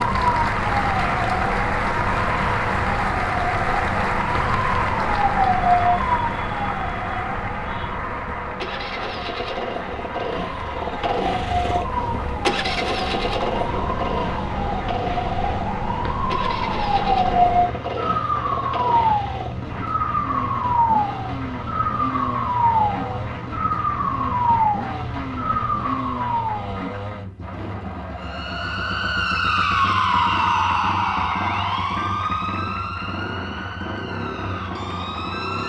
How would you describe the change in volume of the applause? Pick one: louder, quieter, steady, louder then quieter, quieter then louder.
quieter.